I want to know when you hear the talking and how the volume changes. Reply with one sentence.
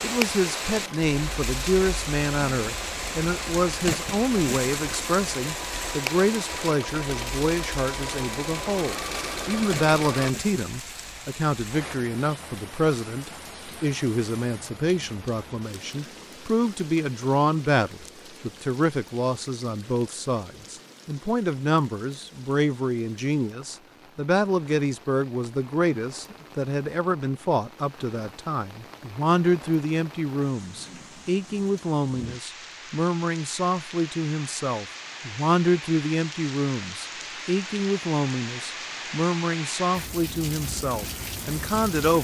The talking can be heard from 0.0 to 42.2 s, at a steady volume.